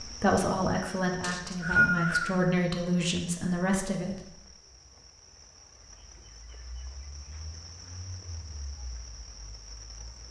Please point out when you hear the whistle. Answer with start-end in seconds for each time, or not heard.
1.2-2.3.